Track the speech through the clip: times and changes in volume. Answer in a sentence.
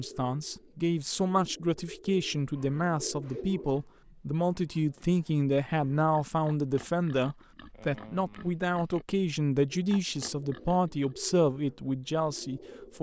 The speech can be heard from 0.0 to 12.9 s, at a steady volume.